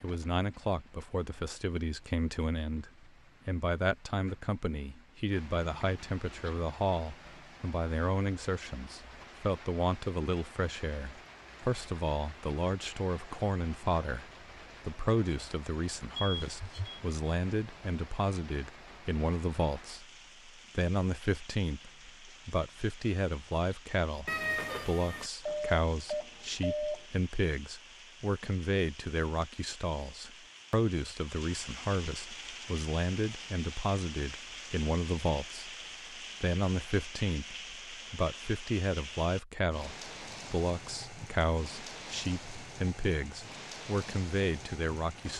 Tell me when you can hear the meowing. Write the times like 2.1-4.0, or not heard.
24.2-25.3.